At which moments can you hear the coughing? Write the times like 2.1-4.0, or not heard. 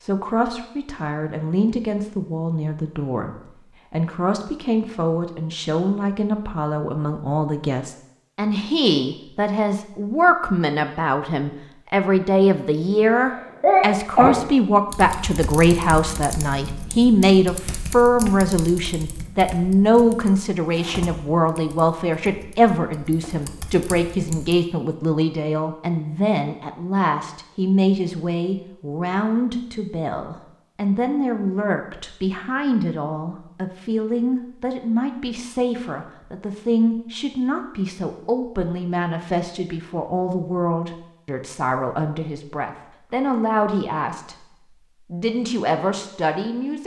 13.1-14.3.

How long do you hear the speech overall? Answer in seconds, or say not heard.
47 s.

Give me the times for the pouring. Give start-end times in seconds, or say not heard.
not heard.